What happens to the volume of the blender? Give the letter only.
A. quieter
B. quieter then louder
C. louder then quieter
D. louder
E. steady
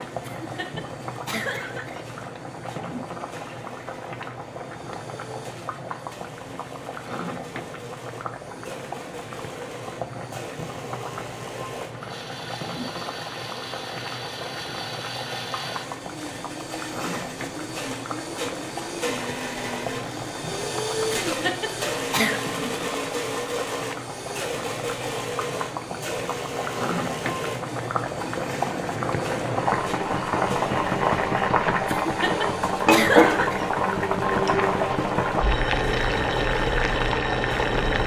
C.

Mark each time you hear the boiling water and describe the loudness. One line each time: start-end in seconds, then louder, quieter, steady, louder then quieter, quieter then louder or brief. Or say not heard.
0.0-38.0 louder.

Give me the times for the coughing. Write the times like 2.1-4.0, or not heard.
0.2-2.0, 21.1-22.4, 31.9-33.7.